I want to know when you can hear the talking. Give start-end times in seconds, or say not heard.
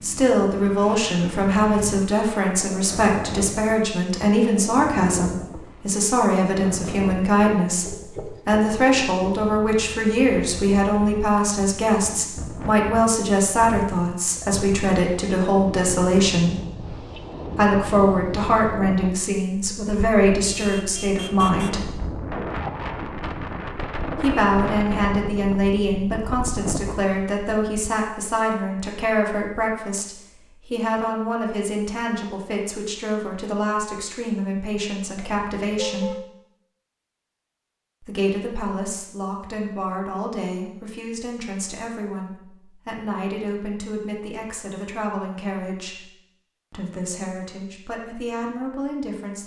0.0-16.6, 17.6-21.9, 24.2-36.1, 38.0-46.1, 46.7-49.4.